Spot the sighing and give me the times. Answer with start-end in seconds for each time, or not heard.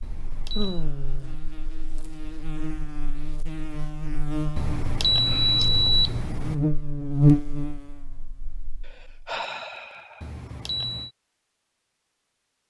0.6-1.4, 5.2-5.7, 8.8-10.3.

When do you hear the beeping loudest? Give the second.
6 s.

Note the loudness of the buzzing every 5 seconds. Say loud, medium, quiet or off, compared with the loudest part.
medium, loud, off.